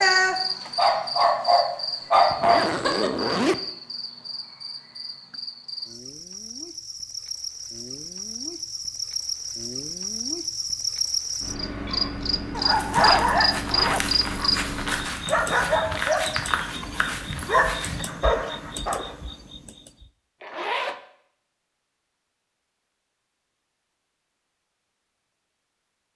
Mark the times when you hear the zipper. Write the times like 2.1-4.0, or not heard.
2.3-3.6, 12.9-14.0, 20.4-21.0.